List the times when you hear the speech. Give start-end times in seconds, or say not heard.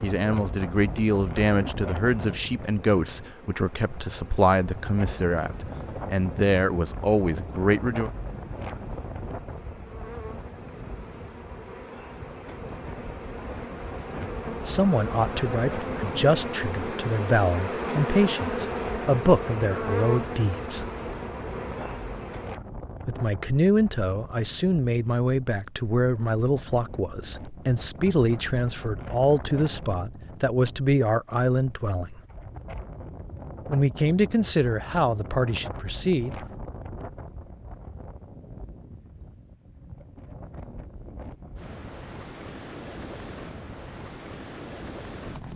0.0-8.1, 14.7-20.9, 23.1-32.2, 33.6-36.4.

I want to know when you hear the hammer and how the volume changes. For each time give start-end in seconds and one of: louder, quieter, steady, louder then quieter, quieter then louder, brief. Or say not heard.
not heard.